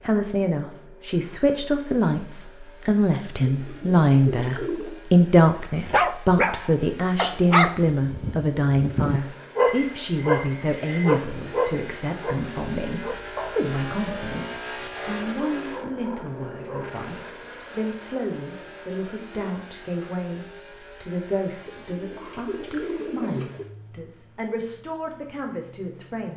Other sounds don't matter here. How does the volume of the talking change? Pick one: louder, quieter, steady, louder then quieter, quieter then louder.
quieter.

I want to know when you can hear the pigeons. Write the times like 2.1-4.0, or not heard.
3.5-5.0, 21.6-23.6.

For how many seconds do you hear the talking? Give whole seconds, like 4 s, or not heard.
26 s.